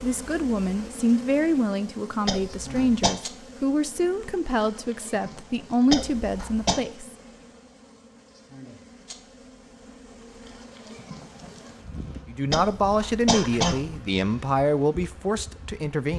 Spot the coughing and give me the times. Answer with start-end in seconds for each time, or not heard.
2.2-3.1, 5.9-6.8, 12.5-14.0.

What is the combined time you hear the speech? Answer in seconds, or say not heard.
11 s.